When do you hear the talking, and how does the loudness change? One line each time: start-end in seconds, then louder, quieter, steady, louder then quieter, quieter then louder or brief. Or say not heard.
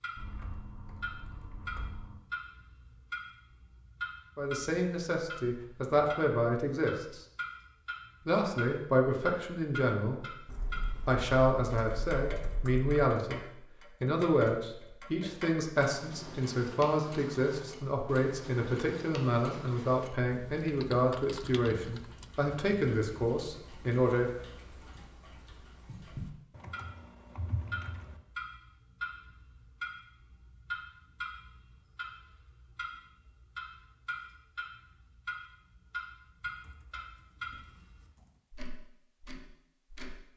4.3-7.2 brief
8.2-10.2 brief
11.1-13.4 brief
14.0-24.3 steady.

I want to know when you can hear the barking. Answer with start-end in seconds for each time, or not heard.
not heard.